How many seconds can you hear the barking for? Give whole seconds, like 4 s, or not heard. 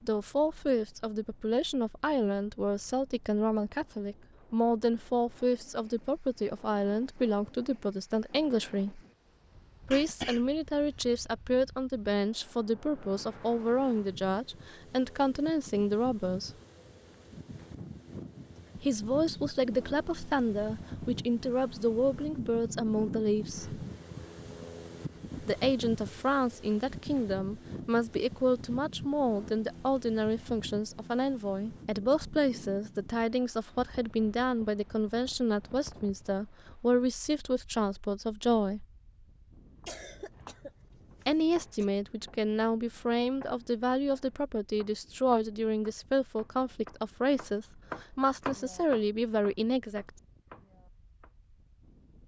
not heard.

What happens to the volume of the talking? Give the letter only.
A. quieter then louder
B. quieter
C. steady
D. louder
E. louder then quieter
C.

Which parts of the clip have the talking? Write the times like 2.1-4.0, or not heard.
0.0-9.0, 9.9-16.5, 18.8-23.8, 25.4-38.9, 41.2-50.1.